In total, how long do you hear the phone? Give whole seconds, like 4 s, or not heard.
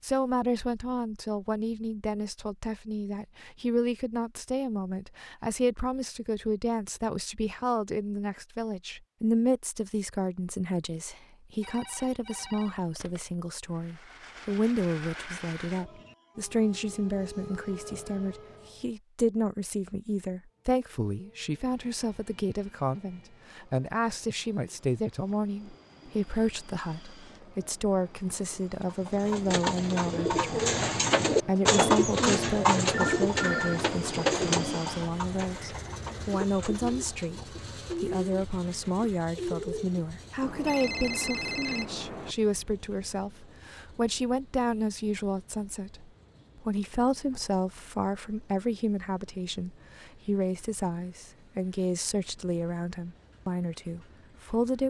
5 s.